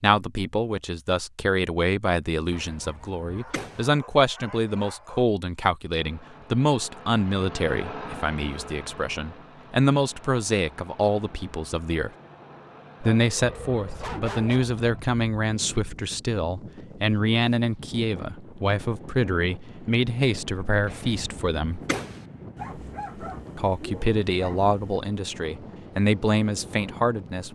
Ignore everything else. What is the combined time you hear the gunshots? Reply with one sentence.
The gunshots can be heard for 3 seconds in total.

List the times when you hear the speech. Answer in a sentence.
The speech can be heard from 0.0 to 12.1 s, from 13.0 to 21.8 s and from 23.6 to 27.5 s.